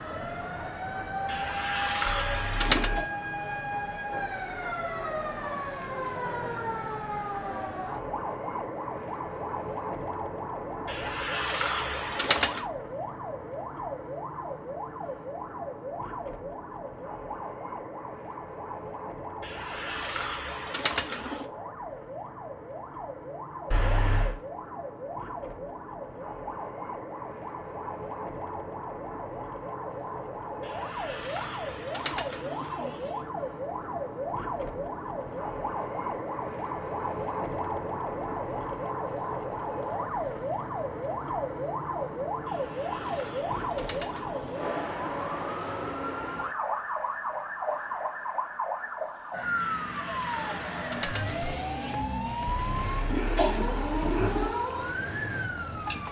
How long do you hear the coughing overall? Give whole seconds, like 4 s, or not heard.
4 s.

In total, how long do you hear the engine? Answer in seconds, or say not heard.
6 s.